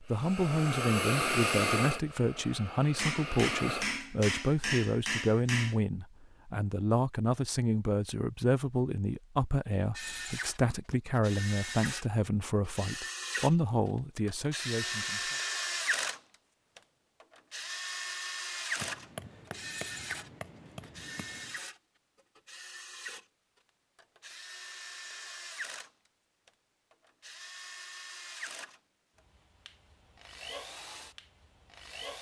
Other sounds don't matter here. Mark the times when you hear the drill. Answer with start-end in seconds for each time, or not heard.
9.9-32.1.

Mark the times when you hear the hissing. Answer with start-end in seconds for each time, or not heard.
0.0-4.0.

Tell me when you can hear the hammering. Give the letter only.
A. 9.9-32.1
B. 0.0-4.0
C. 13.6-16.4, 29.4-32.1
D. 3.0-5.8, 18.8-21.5
D.